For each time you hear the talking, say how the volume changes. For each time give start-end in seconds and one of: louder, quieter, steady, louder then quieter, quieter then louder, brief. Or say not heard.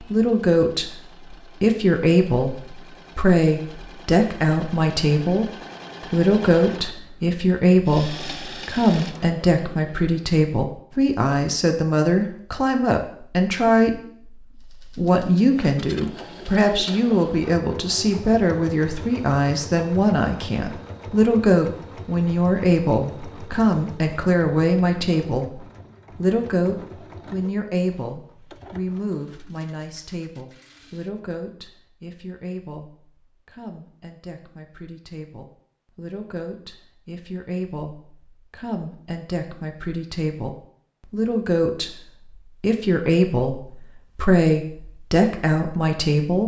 0.0-46.4 quieter then louder.